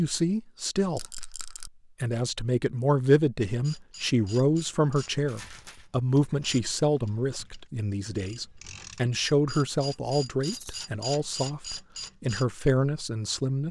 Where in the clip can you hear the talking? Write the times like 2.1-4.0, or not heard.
0.0-1.1, 2.0-13.6.